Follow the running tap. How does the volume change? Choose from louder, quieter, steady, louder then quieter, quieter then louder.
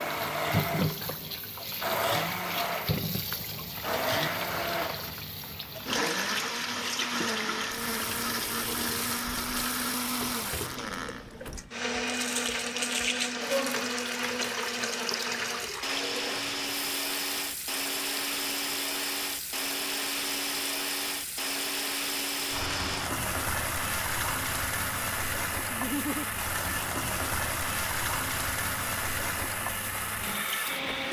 steady.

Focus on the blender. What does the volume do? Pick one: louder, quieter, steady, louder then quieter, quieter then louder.
steady.